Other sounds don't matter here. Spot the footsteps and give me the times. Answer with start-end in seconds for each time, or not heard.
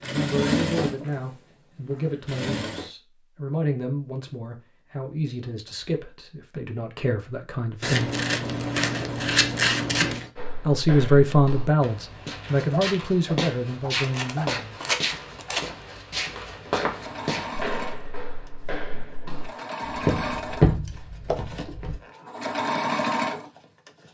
10.3-21.9.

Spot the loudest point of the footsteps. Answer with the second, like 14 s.
21 s.